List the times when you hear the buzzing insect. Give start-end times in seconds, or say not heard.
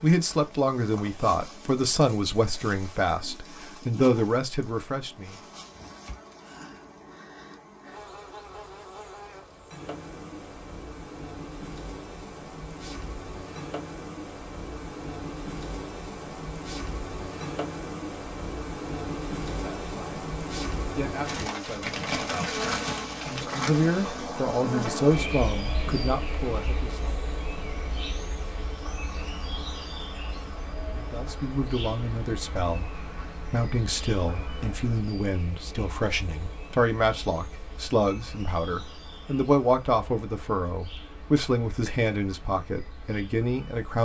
0.0-44.0.